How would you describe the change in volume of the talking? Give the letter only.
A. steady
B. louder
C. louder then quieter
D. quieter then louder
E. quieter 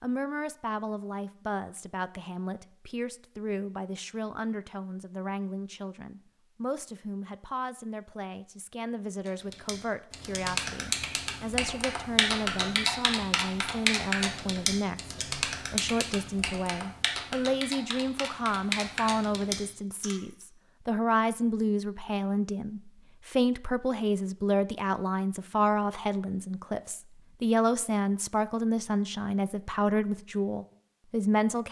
B.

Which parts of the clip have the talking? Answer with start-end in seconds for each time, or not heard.
0.0-31.6.